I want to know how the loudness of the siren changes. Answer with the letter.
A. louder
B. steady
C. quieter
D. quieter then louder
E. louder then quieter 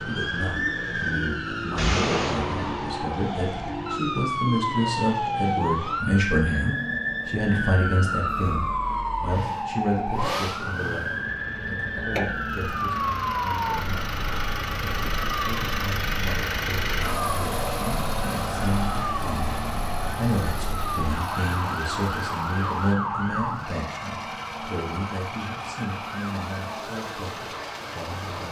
C.